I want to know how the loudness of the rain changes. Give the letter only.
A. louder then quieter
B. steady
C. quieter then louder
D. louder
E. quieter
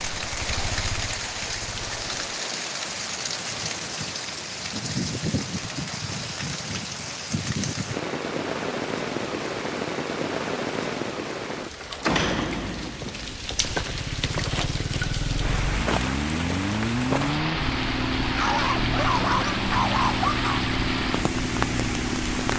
B.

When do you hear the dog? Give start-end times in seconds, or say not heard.
18.4-20.6.